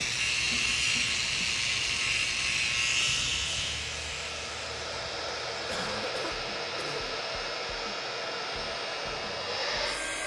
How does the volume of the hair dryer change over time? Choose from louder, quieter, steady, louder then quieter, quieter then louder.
louder.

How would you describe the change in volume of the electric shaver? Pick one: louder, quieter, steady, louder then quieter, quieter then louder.
quieter.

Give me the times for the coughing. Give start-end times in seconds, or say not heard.
0.5-1.6, 5.7-7.2.